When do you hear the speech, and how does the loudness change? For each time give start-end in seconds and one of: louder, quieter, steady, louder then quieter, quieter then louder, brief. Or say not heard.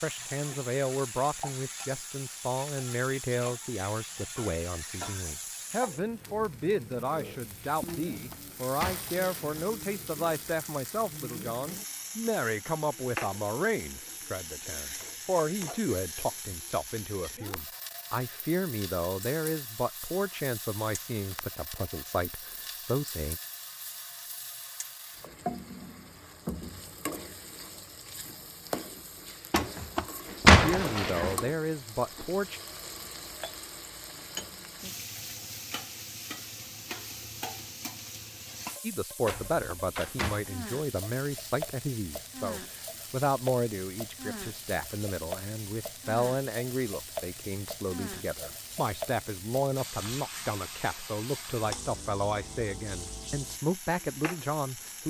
0.0-23.4 steady
30.6-32.6 brief
38.8-55.0 steady.